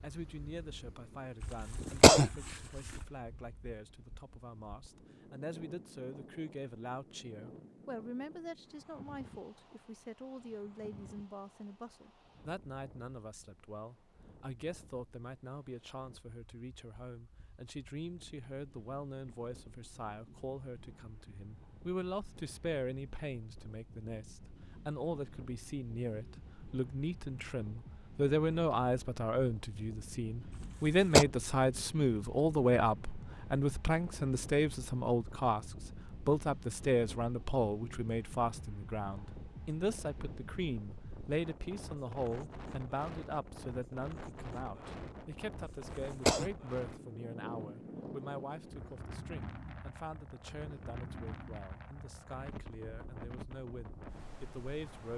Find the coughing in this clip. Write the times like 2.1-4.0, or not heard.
1.4-2.3, 30.6-31.2, 45.6-46.5.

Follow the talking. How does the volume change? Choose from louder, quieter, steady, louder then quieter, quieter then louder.
louder then quieter.